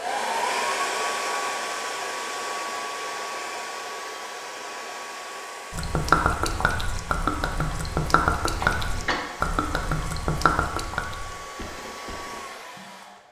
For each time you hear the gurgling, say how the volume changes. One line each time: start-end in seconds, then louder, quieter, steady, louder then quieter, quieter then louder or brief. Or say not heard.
5.7-12.9 quieter.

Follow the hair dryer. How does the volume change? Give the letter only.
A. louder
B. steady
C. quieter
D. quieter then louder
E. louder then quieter
C.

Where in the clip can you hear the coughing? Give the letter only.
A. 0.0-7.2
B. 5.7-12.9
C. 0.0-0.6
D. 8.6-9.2
D.